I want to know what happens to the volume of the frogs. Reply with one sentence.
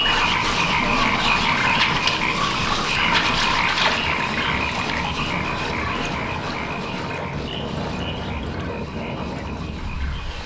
The loudness of the frogs goes down.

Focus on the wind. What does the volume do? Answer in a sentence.
The loudness of the wind stays about the same.